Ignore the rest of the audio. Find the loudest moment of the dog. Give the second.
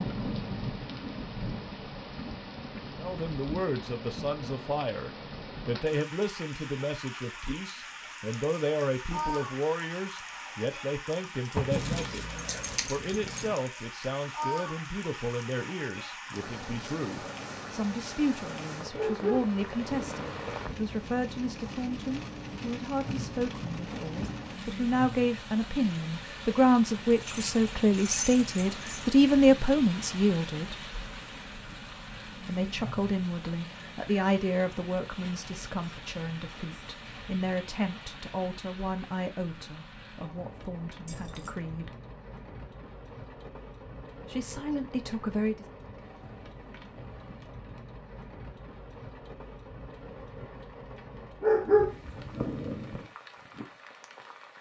52 s.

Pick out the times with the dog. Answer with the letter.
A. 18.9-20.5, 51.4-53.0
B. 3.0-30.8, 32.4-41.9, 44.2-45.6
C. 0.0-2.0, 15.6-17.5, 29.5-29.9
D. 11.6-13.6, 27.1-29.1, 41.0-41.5
A.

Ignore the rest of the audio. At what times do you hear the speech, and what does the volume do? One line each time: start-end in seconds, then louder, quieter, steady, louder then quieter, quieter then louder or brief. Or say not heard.
3.0-30.8 louder
32.4-41.9 quieter
44.2-45.6 brief.